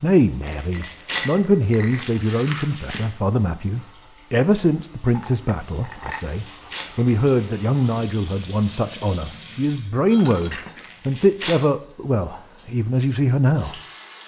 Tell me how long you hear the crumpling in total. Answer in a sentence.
The crumpling can be heard for 5 seconds in total.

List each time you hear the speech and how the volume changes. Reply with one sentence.
You can hear the speech from 0.0 to 13.8 s, at a steady volume.